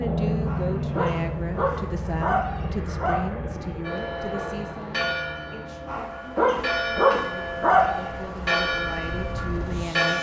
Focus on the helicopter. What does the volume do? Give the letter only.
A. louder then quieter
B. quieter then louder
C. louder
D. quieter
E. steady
B.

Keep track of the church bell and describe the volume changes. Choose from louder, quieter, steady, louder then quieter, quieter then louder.
quieter then louder.